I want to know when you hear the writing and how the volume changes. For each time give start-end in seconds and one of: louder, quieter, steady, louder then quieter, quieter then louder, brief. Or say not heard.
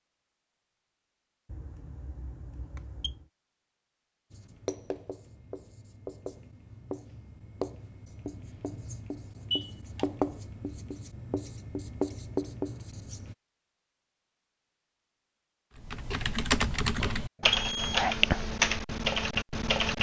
4.3-13.3 louder.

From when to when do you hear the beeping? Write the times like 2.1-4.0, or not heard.
1.4-3.2, 9.5-10.1, 17.4-18.1.